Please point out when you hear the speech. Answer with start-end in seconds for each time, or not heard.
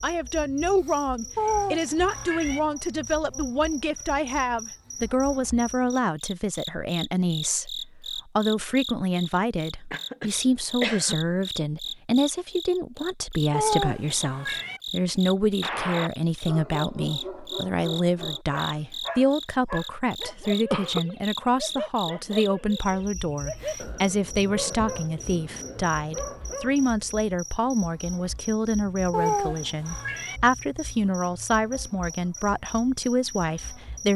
0.0-34.1.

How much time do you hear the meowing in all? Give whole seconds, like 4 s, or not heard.
4 s.